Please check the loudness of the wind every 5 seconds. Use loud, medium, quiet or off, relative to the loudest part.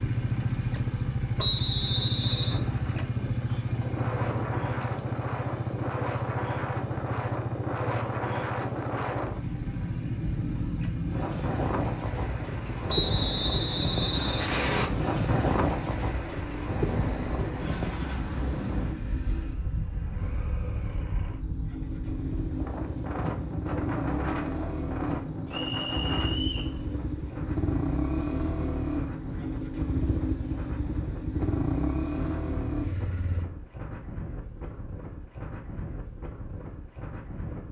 medium, loud, loud, loud, medium, medium, medium, medium.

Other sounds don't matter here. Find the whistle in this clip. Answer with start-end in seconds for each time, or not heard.
1.4-2.5, 12.8-14.8, 25.5-26.7.